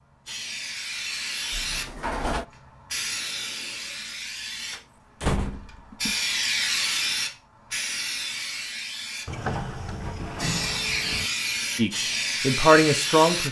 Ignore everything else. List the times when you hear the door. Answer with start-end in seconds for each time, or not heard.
1.5-2.5, 4.7-6.2, 9.2-11.3.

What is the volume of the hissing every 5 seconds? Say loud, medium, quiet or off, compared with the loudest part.
medium, loud, loud.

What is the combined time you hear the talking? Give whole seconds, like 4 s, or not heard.
2 s.